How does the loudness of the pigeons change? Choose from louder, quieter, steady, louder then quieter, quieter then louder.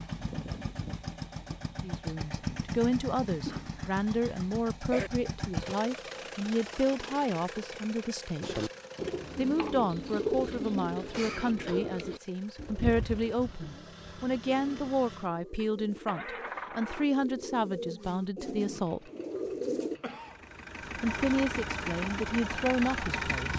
quieter then louder.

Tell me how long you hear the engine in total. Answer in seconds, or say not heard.
22 s.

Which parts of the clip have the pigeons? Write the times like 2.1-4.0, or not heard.
8.4-20.0.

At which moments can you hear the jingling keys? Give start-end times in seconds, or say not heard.
not heard.